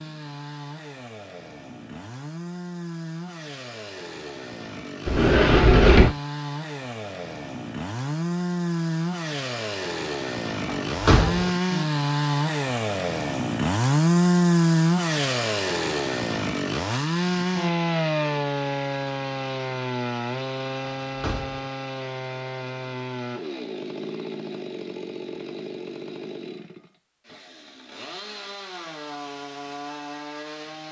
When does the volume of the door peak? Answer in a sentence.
The volume of the door peaks at 6 seconds.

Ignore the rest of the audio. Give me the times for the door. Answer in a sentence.
The door can be heard from 5.0 to 6.2 s, from 10.7 to 11.5 s and from 21.1 to 21.6 s.